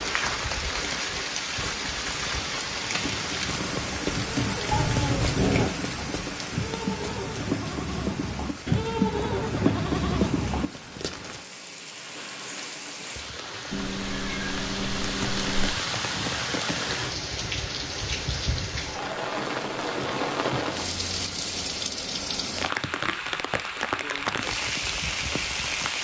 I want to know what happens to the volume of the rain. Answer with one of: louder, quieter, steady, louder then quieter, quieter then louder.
quieter then louder.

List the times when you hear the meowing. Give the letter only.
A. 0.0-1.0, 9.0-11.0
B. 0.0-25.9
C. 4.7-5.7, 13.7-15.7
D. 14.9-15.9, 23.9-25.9
C.